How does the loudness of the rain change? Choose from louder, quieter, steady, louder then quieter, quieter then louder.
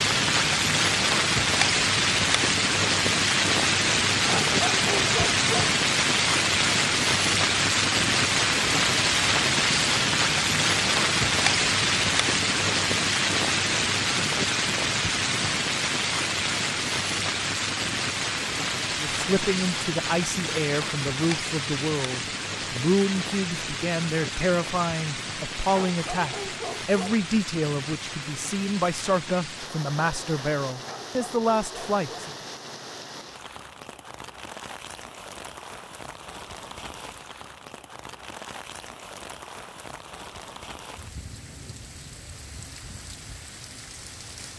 quieter.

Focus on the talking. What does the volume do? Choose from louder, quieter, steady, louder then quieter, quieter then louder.
steady.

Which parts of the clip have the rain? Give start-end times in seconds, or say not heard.
0.0-44.5.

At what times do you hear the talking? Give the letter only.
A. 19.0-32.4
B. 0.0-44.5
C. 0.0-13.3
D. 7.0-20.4
A.